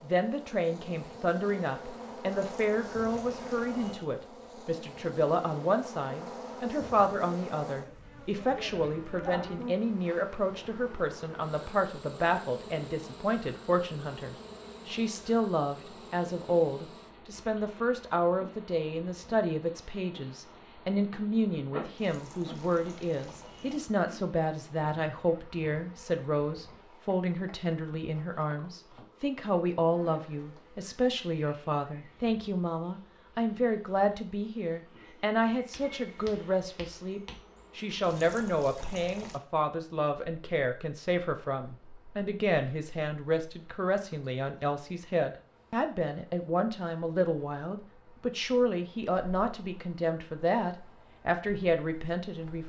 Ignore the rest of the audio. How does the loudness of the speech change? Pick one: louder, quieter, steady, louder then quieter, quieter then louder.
steady.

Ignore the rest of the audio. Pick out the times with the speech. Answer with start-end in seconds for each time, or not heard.
0.0-52.6.